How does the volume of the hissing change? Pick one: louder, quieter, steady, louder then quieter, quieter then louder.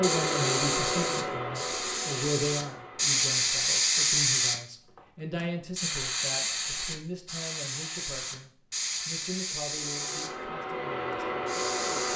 louder then quieter.